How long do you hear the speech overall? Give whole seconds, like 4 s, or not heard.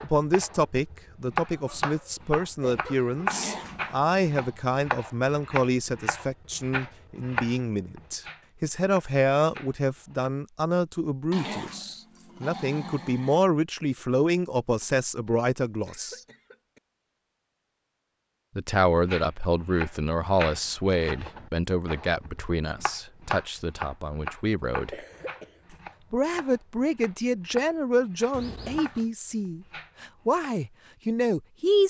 28 s.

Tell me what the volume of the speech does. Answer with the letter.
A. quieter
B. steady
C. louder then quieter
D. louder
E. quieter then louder
B.